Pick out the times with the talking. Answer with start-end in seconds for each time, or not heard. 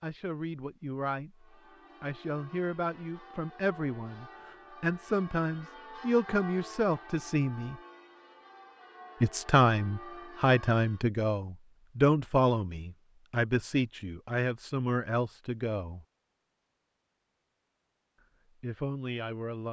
0.0-7.8, 9.2-16.1, 18.6-19.6.